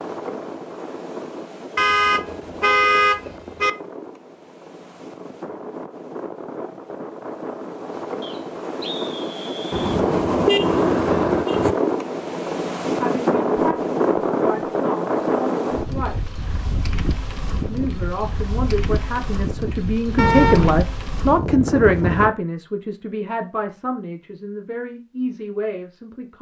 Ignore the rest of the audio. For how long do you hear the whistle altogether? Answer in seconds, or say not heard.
2 s.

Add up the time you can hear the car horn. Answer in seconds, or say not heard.
5 s.